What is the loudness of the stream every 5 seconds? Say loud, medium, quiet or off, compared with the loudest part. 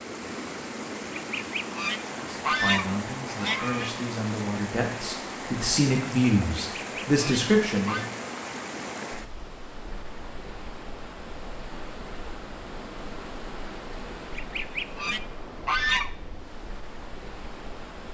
loud, loud, medium, medium.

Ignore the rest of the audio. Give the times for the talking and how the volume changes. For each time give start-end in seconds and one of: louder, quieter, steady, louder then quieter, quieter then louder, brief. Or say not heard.
2.1-8.1 louder.